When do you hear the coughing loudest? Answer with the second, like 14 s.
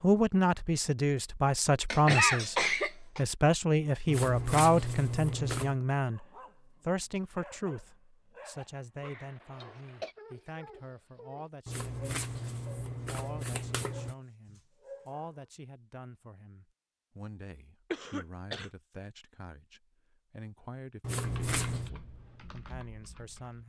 2 s.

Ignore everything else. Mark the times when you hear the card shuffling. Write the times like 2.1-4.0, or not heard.
4.0-5.8, 11.7-14.2, 21.0-21.9.